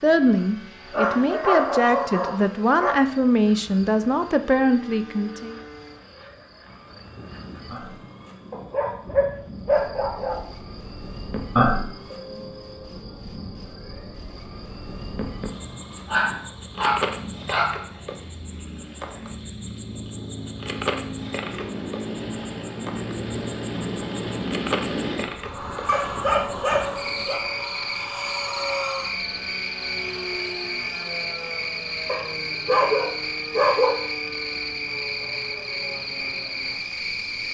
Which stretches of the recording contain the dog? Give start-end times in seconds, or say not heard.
0.9-3.0, 8.5-10.4, 16.1-17.8, 25.9-27.4, 32.0-34.0.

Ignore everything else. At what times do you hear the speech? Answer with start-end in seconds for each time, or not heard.
0.0-5.5.